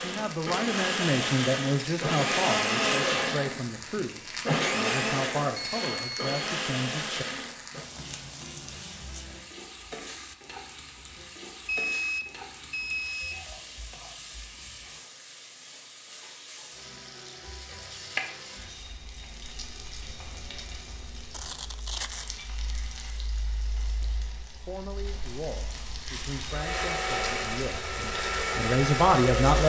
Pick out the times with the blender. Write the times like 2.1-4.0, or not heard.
0.0-7.9, 26.5-29.6.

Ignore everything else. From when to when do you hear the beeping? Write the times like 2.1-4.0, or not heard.
5.5-6.3, 11.7-13.4, 21.3-22.4.